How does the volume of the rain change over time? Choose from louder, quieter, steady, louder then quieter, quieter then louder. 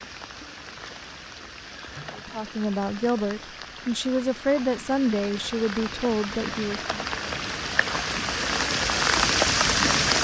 louder.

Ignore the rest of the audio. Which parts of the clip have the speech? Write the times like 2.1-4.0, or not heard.
2.1-7.0.